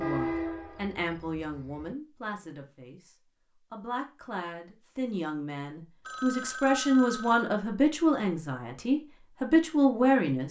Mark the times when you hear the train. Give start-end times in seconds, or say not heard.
0.0-1.9.